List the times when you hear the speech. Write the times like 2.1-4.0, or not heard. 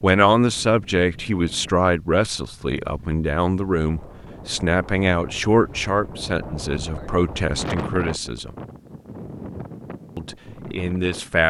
0.0-8.5, 10.2-11.4.